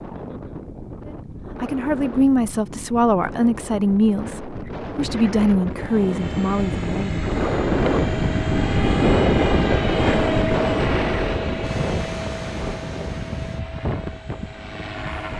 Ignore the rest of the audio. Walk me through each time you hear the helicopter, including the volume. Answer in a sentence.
The helicopter can be heard from 5.7 to 15.3 s, getting louder then quieter.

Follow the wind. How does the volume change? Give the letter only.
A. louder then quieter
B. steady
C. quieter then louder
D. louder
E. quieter
A.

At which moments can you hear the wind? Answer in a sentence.
The wind can be heard from 0.0 to 15.3 s.